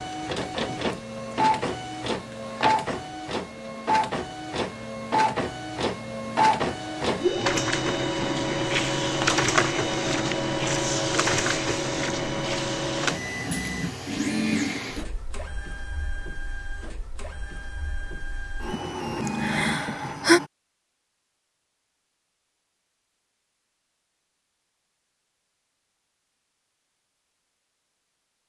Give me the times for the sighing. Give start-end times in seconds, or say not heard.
19.2-20.4.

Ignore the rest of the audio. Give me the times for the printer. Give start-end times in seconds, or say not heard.
0.0-20.5.